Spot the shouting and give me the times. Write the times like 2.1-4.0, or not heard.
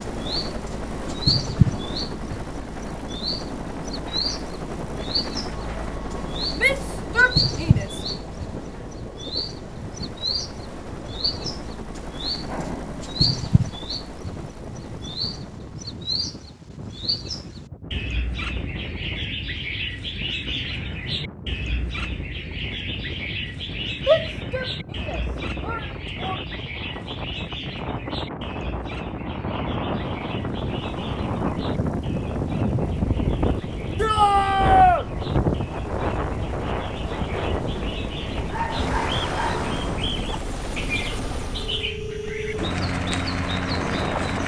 6.5-8.0, 24.1-26.4, 34.0-35.0.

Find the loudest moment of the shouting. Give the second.
35 s.